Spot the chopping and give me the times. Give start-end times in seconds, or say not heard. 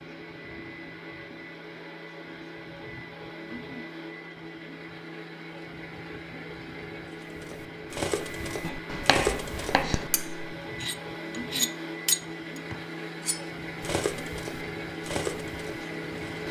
8.6-10.1.